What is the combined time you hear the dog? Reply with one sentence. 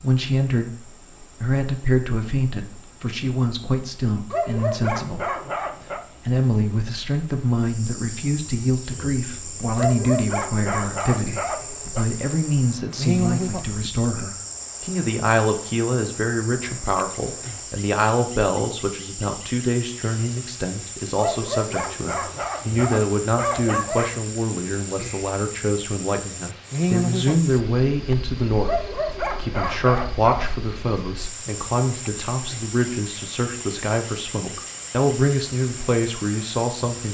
You can hear the dog for 9 seconds altogether.